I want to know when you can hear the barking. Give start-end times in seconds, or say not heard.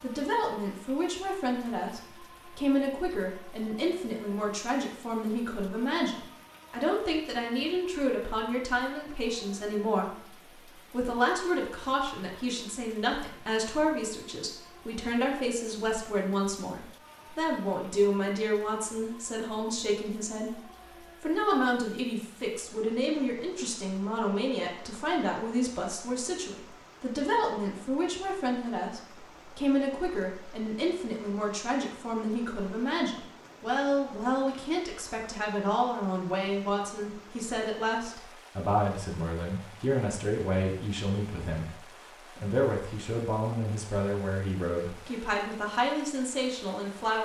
not heard.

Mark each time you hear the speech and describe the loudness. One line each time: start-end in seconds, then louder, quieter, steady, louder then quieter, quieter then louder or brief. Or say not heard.
0.0-20.6 steady
21.2-47.1 steady.